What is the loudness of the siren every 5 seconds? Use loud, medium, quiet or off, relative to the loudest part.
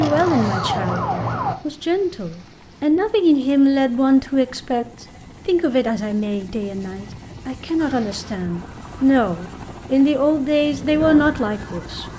loud, quiet, medium.